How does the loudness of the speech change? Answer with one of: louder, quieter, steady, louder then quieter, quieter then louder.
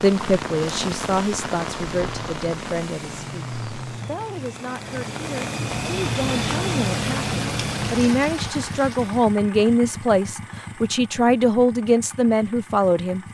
quieter then louder.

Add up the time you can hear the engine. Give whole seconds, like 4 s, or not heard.
13 s.